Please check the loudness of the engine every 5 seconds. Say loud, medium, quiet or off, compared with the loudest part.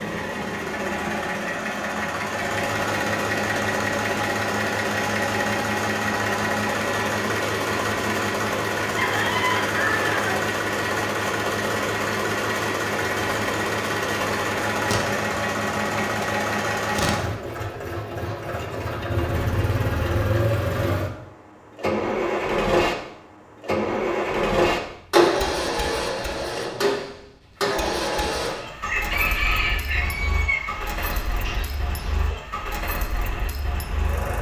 loud, loud, loud, loud, loud, loud, medium.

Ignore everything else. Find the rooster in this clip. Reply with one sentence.
You can hear the rooster from 8.9 to 10.2 s and from 28.8 to 32.4 s.